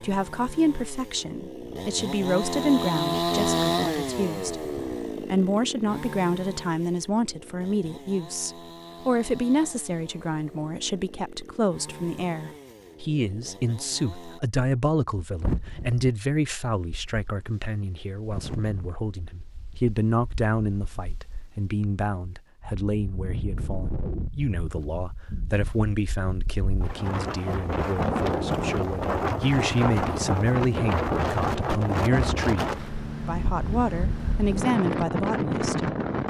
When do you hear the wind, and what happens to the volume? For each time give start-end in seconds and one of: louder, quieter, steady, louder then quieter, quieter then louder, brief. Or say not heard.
15.2-36.2 louder.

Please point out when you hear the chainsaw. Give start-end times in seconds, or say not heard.
0.0-14.4.